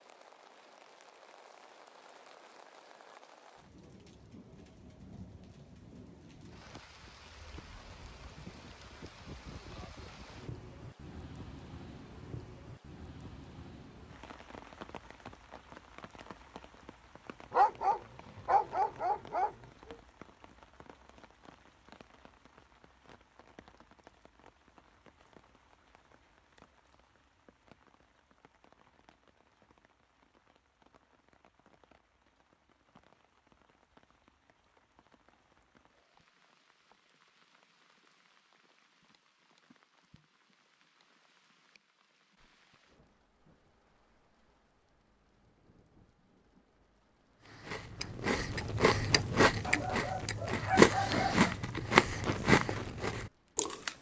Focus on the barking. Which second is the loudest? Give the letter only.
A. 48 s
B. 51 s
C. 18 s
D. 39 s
C.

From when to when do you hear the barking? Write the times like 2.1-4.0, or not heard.
17.5-19.9, 49.6-51.5.